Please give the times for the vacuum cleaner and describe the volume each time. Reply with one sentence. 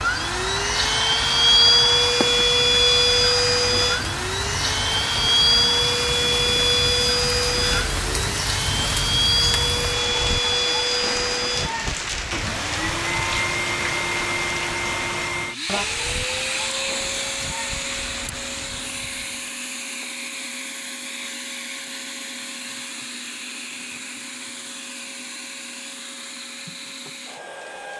You can hear the vacuum cleaner from 0.0 to 27.9 s, getting quieter.